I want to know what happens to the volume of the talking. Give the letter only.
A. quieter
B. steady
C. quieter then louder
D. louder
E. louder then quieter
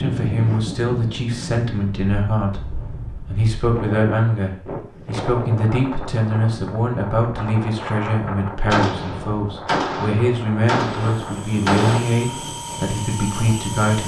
B.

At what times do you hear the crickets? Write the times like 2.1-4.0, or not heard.
not heard.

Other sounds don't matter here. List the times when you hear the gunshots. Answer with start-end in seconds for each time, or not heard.
8.7-12.0.